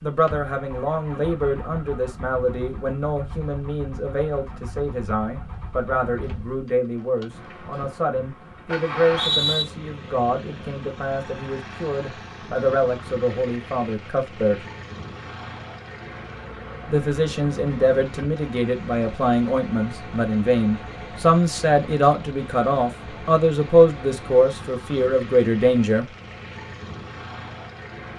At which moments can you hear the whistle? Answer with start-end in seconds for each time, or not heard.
8.9-9.7.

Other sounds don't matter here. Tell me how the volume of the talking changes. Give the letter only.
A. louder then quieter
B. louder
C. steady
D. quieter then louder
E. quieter
B.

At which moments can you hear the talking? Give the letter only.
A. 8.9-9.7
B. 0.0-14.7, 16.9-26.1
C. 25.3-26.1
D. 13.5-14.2
B.